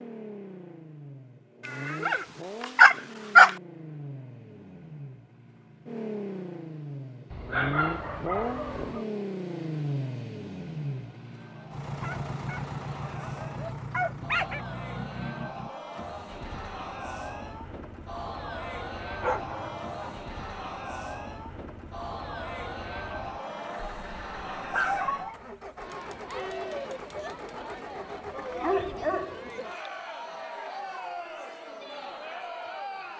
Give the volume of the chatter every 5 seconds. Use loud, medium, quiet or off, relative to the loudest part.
off, off, medium, loud, loud, loud, loud.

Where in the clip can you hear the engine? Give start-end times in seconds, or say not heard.
0.0-29.6.